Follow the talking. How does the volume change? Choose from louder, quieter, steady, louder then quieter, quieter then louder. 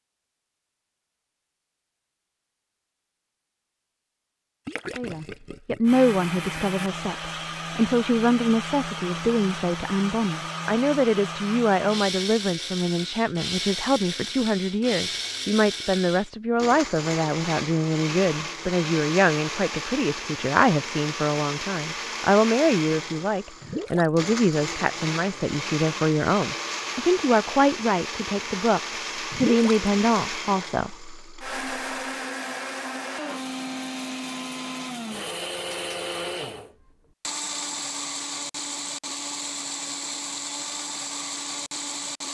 steady.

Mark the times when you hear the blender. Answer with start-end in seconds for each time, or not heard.
5.8-42.3.